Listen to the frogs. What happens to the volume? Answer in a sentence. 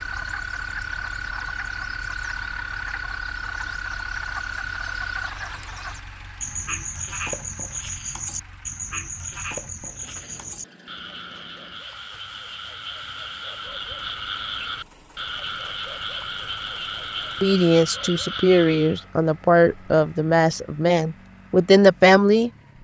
The volume of the frogs stays about the same.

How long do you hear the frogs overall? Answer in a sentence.
You can hear the frogs for 19 seconds altogether.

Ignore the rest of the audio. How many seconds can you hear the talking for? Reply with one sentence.
You can hear the talking for 5 seconds altogether.